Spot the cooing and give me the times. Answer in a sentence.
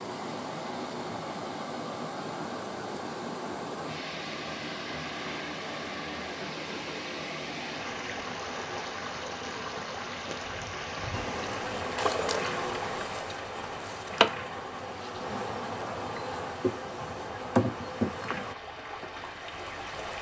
You can't hear the cooing here.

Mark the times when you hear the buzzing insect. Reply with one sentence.
You can hear the buzzing insect from 11.1 to 18.6 s.